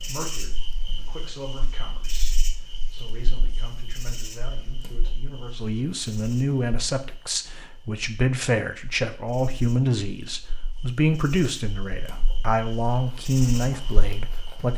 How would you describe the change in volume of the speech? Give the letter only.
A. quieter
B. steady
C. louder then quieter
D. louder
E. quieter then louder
D.